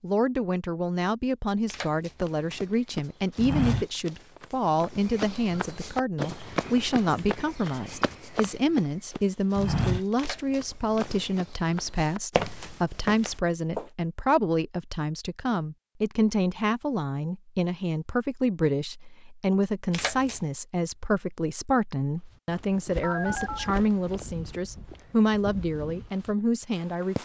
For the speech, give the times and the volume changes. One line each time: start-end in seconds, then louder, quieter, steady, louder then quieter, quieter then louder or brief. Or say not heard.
0.0-27.2 steady.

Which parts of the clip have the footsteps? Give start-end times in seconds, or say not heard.
2.2-13.9, 22.3-27.2.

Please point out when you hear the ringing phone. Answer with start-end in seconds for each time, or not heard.
23.0-23.8.